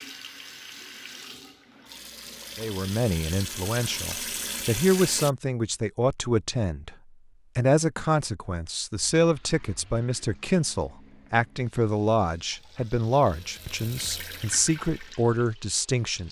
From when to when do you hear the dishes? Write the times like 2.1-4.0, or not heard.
not heard.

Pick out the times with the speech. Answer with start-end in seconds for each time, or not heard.
2.5-7.0, 7.5-16.2.